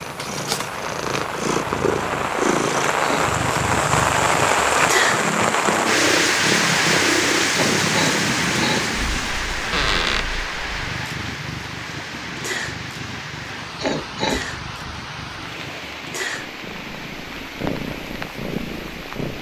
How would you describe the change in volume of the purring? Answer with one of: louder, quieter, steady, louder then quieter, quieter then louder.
quieter.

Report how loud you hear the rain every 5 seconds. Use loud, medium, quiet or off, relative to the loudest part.
loud, loud, medium, quiet.